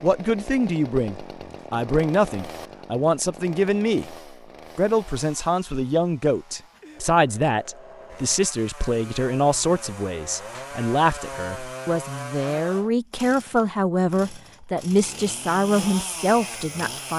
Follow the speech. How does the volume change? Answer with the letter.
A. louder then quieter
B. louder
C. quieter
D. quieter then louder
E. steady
E.